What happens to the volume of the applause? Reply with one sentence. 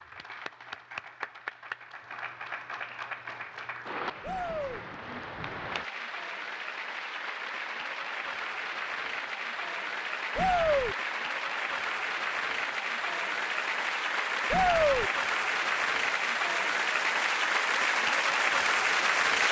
The volume of the applause goes up.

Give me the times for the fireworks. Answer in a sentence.
You can't hear the fireworks here.